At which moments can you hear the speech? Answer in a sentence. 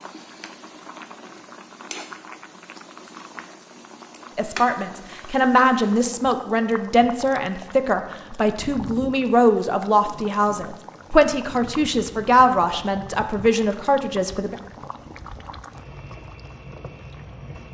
The speech can be heard from 4.3 to 14.6 s.